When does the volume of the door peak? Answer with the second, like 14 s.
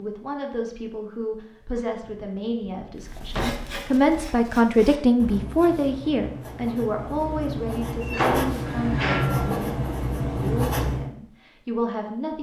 8 s.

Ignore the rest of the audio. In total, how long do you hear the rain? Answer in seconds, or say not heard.
not heard.